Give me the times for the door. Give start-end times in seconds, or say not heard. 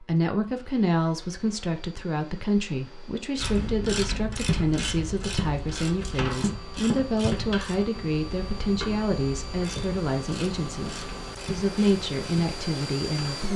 not heard.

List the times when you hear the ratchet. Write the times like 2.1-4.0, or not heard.
3.4-13.5.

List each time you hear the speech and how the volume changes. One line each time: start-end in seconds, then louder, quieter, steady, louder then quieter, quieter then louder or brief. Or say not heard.
0.0-13.5 steady.